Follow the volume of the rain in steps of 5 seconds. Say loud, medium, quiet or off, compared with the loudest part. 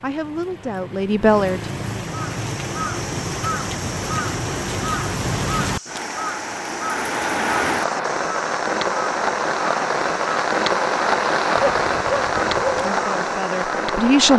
medium, loud, loud.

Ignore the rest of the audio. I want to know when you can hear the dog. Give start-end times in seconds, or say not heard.
11.6-12.9.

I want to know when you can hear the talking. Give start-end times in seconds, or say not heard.
0.0-1.7, 12.8-14.3.